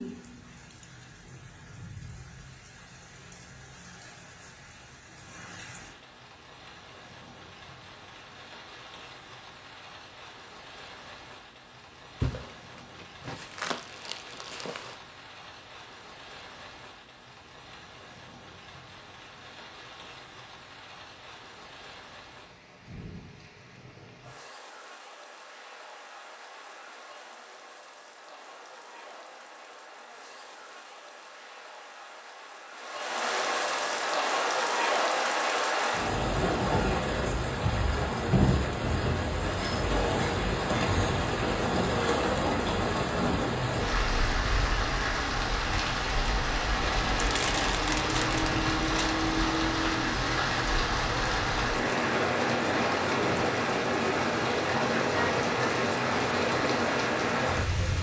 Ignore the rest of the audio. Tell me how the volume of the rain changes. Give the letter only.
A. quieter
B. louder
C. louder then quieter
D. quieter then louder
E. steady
B.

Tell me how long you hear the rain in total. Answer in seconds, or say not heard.
58 s.